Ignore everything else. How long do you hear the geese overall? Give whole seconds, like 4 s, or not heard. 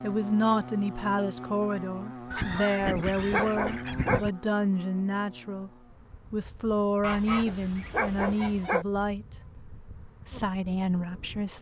4 s.